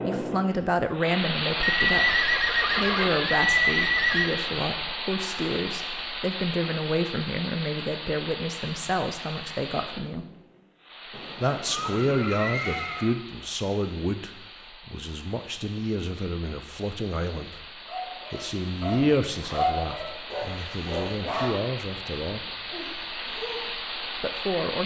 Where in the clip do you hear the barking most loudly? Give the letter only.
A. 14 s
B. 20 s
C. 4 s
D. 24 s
B.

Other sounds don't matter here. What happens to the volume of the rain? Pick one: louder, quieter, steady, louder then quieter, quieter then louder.
quieter then louder.